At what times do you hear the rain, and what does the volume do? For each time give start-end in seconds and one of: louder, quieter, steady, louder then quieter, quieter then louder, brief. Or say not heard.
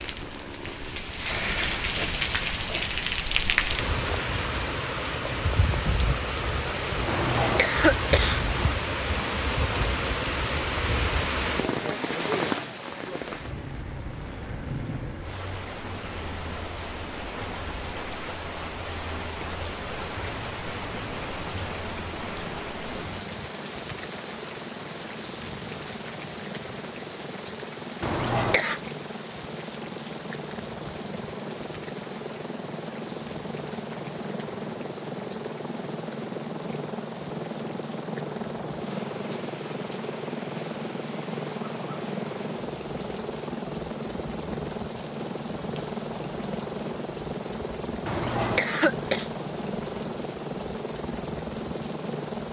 0.0-52.4 quieter.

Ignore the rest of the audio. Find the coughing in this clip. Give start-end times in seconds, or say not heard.
7.0-8.8, 28.0-28.8, 48.0-49.2.